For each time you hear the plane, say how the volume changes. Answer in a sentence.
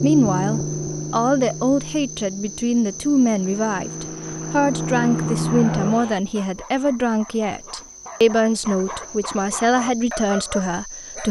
The plane can be heard from 0.0 to 6.2 s, getting quieter then louder.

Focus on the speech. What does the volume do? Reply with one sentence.
The loudness of the speech stays about the same.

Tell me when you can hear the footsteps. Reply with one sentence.
You can't hear the footsteps here.